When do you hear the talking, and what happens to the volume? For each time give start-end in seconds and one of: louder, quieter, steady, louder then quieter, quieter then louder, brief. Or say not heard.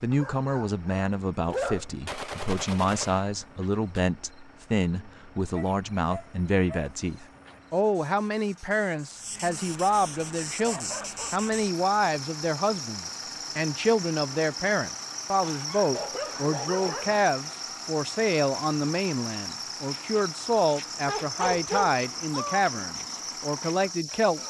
0.0-24.4 steady.